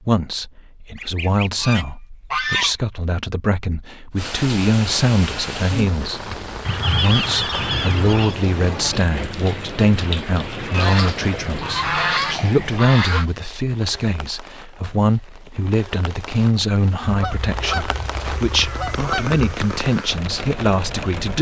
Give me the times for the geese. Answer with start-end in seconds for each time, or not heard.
0.9-2.8, 6.7-8.3, 10.7-13.2, 17.0-19.4.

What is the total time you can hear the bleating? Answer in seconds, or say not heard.
not heard.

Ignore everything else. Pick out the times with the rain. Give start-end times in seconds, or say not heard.
4.2-21.3.